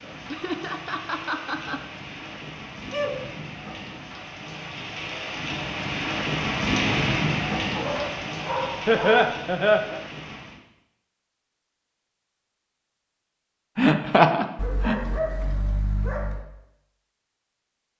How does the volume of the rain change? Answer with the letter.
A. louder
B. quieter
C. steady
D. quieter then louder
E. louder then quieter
E.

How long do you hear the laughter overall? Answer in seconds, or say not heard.
4 s.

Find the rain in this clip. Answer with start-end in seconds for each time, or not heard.
0.0-10.6.